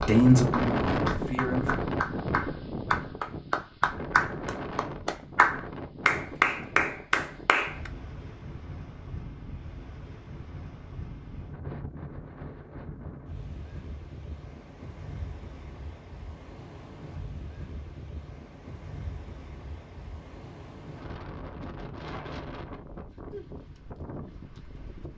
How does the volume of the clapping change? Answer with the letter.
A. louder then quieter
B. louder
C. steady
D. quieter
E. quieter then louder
B.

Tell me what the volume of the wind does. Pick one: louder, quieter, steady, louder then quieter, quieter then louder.
quieter.